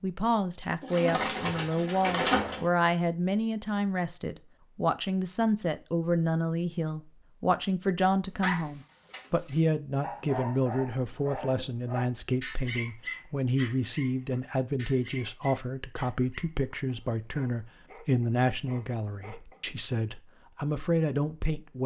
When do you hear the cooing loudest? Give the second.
2 s.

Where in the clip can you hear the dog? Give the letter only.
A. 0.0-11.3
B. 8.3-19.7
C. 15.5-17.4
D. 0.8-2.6
B.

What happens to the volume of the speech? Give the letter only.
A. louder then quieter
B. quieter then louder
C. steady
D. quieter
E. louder
C.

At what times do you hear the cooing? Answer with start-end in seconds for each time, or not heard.
0.8-2.6.